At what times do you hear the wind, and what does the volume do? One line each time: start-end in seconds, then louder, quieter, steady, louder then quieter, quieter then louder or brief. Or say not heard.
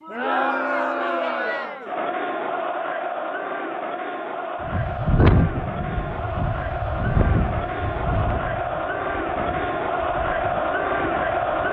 4.6-11.6 quieter.